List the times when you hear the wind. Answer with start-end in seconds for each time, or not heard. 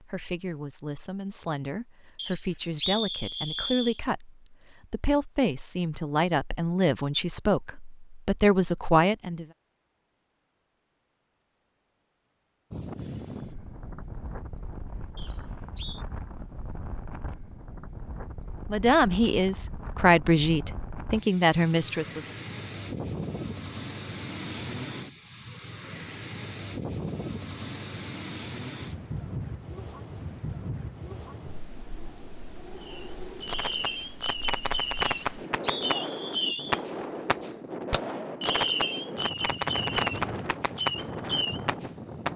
12.7-42.3.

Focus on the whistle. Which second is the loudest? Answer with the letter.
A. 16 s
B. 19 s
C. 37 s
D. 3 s
D.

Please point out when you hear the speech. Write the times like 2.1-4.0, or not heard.
0.0-9.4, 18.7-22.2.